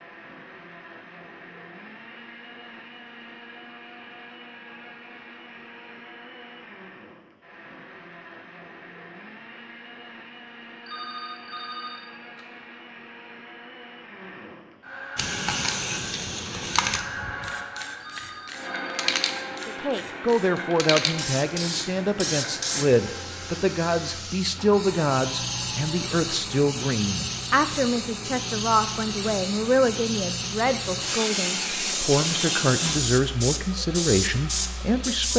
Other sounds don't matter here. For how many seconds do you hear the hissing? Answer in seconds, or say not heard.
20 s.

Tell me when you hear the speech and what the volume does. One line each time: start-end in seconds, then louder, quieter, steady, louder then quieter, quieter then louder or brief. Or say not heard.
19.6-35.3 steady.